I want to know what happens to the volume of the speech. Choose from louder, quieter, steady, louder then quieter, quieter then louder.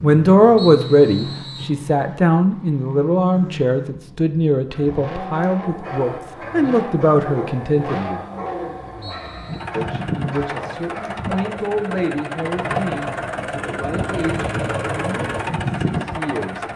quieter.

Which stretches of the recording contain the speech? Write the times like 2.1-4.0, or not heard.
0.0-8.2, 9.8-16.6.